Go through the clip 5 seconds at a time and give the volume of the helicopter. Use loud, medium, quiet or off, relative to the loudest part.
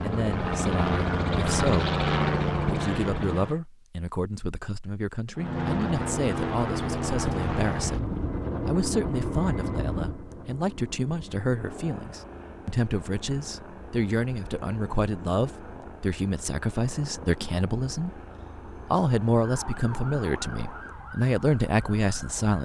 loud, loud, quiet, quiet, quiet.